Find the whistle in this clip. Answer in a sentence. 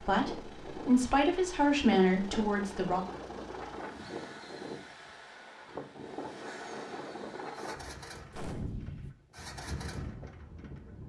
You can't hear the whistle here.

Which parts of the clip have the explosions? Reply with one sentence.
You can hear the explosions from 8.3 to 9.2 s.